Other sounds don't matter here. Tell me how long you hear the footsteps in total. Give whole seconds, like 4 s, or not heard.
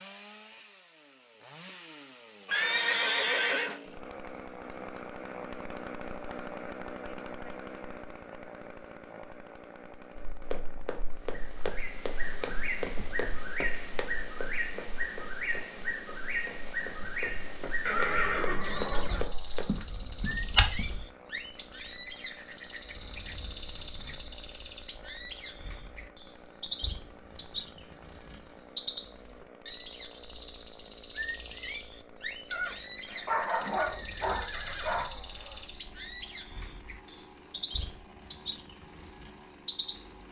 11 s.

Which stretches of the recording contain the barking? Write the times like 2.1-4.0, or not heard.
33.2-35.1.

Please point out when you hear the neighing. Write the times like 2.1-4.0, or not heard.
2.5-3.8, 17.9-19.2, 32.5-35.0.